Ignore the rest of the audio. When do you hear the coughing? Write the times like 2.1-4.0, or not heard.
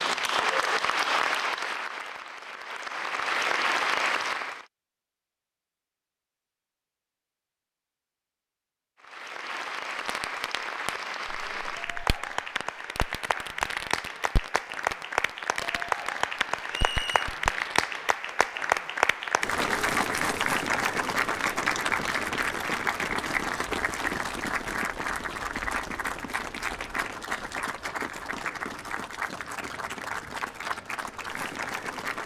not heard.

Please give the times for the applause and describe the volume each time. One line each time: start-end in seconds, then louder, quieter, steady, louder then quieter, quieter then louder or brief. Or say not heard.
0.0-4.7 quieter then louder
9.0-32.2 louder then quieter.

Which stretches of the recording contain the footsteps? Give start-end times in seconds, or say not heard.
not heard.